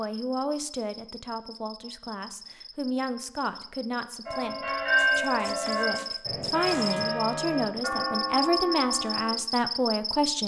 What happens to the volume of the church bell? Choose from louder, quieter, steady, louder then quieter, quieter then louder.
quieter.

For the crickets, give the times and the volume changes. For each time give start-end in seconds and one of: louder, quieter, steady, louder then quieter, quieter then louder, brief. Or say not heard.
0.0-10.4 louder.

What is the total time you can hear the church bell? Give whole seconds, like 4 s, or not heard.
5 s.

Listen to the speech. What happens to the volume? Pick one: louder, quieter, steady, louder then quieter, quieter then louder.
louder.